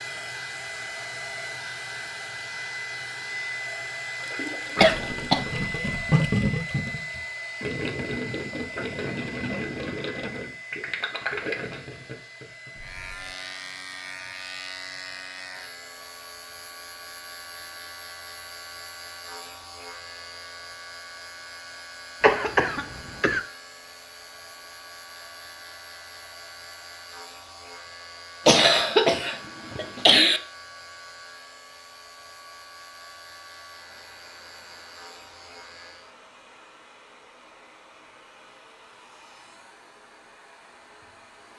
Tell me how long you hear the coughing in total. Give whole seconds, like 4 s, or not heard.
4 s.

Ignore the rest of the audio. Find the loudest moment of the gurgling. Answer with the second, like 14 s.
6 s.